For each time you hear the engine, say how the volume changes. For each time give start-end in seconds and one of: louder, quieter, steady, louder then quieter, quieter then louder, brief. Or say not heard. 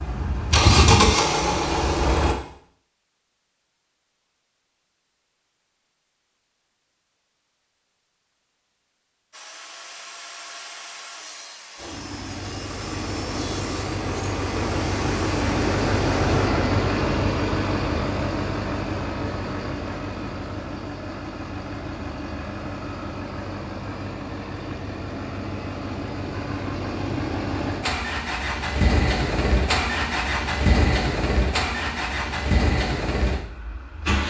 0.0-2.4 brief
11.8-34.2 quieter then louder.